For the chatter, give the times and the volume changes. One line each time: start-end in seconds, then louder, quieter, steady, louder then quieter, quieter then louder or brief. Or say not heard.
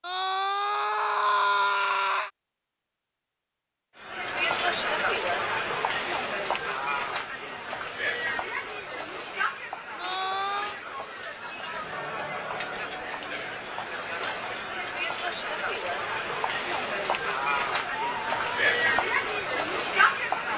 4.0-20.5 quieter then louder.